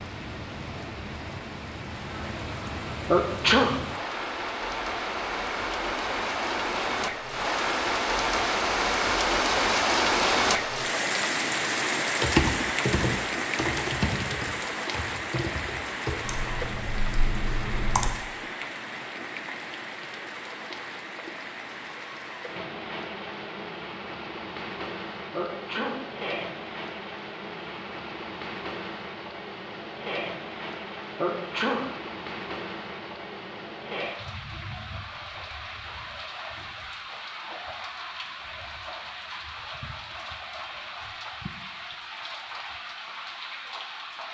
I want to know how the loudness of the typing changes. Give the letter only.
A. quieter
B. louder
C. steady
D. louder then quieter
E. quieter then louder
A.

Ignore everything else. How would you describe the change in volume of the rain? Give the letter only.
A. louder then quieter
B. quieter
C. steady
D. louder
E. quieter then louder
B.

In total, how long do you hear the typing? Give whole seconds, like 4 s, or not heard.
6 s.